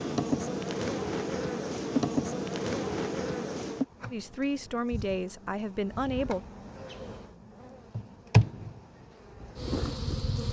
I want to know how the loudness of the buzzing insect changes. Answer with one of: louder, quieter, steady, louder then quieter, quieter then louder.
quieter then louder.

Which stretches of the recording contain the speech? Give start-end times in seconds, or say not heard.
4.1-6.4.